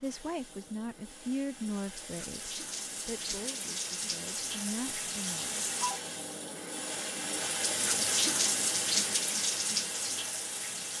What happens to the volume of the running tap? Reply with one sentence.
The loudness of the running tap goes up.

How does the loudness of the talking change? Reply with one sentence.
The volume of the talking goes down, then up.